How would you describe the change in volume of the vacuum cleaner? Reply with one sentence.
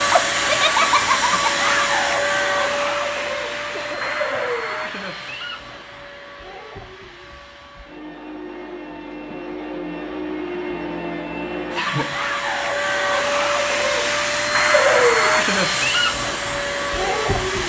The volume of the vacuum cleaner goes down, then up.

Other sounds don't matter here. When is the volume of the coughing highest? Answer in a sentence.
The loudest moment of the coughing is at 12 seconds.